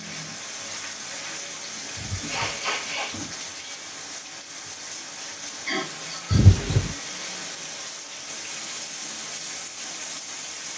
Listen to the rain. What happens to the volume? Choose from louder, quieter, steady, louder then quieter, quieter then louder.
steady.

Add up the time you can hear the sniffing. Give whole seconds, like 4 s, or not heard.
2 s.